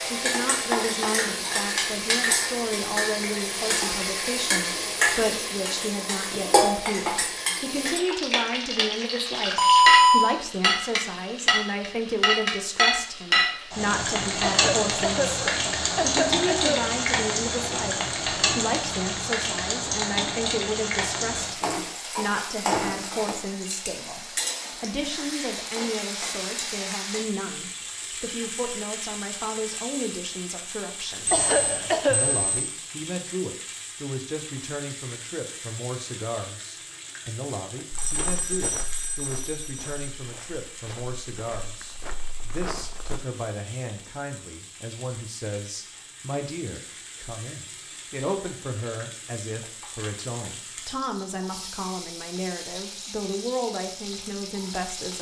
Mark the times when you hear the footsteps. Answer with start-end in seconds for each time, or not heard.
37.9-43.2.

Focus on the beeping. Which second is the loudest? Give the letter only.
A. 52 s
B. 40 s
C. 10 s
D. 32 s
C.